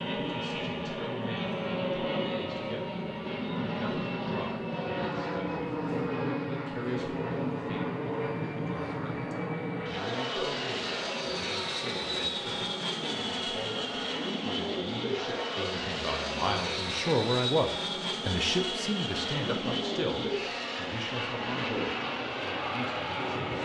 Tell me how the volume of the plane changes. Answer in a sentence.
The volume of the plane stays about the same.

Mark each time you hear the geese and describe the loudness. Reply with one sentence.
You can't hear the geese here.